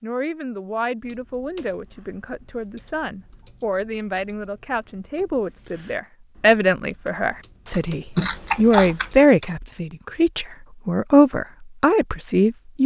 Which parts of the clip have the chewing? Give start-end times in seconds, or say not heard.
7.7-9.5.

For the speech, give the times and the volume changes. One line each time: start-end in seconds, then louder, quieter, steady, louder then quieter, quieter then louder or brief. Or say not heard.
0.0-12.8 louder.